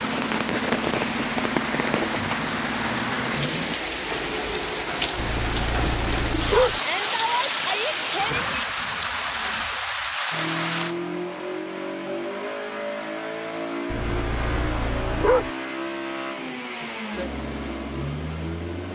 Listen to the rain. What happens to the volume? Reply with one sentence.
The volume of the rain stays about the same.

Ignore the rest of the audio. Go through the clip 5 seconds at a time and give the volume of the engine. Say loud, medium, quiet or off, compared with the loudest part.
loud, off, loud, loud.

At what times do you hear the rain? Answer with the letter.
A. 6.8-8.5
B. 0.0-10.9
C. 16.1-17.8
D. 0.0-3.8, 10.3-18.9
B.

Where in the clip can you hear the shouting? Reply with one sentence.
The shouting can be heard from 6.8 to 8.5 s.